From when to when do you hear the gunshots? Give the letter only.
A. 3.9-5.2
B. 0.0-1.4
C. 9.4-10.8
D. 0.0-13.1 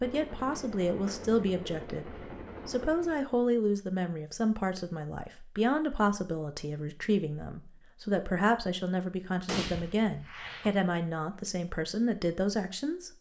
C.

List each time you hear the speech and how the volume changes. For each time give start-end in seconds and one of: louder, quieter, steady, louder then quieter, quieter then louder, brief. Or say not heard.
0.0-13.1 steady.